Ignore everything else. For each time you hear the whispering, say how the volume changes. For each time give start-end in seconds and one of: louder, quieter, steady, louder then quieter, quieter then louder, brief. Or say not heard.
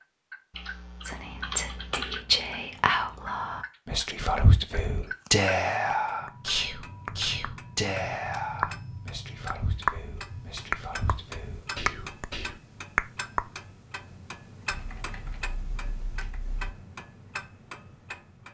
1.0-12.6 quieter.